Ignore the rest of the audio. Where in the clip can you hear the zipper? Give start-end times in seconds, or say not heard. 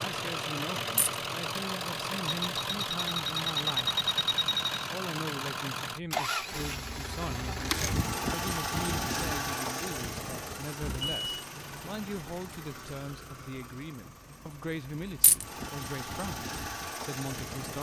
not heard.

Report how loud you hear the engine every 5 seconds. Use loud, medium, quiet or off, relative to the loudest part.
loud, loud, medium, medium.